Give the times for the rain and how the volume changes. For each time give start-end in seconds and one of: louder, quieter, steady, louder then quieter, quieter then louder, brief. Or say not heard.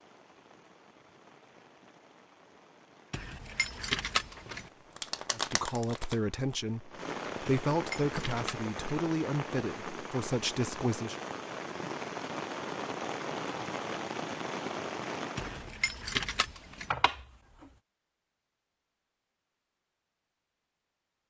0.0-15.8 louder.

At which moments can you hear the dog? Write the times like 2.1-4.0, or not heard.
not heard.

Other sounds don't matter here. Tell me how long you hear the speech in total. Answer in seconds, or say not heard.
6 s.